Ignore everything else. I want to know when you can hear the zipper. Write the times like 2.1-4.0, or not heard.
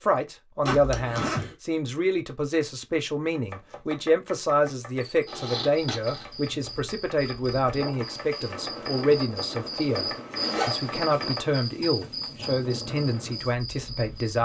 0.7-1.6, 5.2-6.4, 10.3-10.9.